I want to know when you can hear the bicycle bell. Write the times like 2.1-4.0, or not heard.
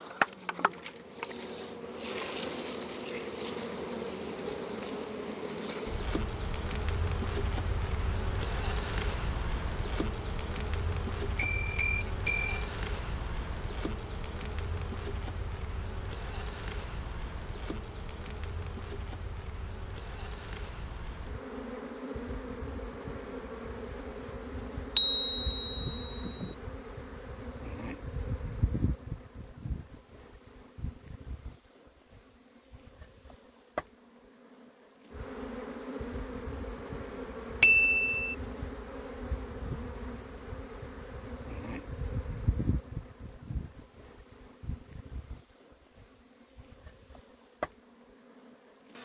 11.3-12.7, 24.9-26.4, 37.6-38.4.